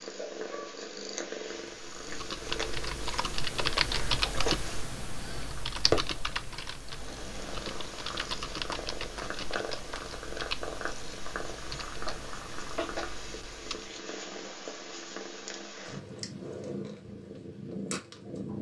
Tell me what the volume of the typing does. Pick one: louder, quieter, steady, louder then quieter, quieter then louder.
quieter.